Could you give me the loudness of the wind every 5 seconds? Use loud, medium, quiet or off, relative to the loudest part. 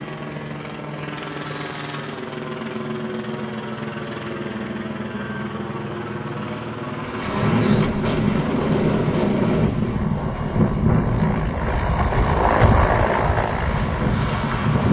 off, loud, loud.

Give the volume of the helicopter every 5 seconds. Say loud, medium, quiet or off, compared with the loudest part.
medium, medium, loud.